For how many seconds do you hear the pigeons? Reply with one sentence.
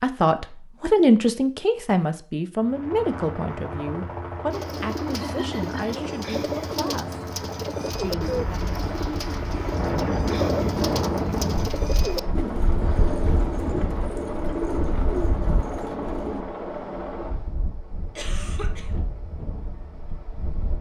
The pigeons can be heard for 12 seconds in total.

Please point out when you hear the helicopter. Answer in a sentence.
The helicopter can be heard from 2.6 to 20.7 s.